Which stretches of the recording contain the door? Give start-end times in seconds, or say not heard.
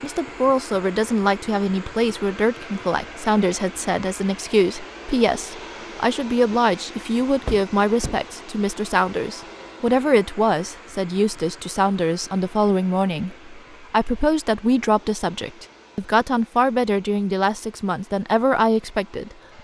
7.5-8.2.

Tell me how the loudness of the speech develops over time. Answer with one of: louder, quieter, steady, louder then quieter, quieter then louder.
steady.